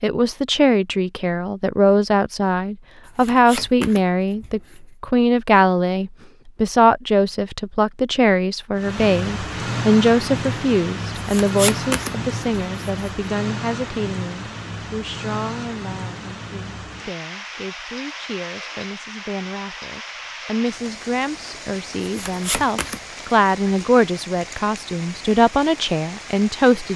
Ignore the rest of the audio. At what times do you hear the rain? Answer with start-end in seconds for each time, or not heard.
8.8-26.9.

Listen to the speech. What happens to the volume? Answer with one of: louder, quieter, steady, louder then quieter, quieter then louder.
quieter then louder.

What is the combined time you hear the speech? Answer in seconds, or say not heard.
27 s.